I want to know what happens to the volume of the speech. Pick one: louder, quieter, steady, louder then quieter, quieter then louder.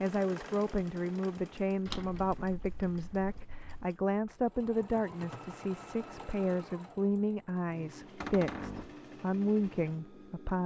steady.